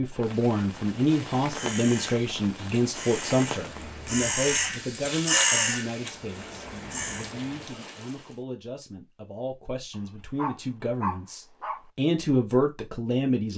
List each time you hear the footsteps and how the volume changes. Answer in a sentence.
You can't hear the footsteps here.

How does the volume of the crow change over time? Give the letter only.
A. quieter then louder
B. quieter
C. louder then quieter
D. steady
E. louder
C.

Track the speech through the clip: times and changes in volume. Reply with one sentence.
The speech can be heard from 0.0 to 13.5 s, getting quieter then louder.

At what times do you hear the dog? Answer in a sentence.
The dog can be heard from 9.9 to 11.8 s.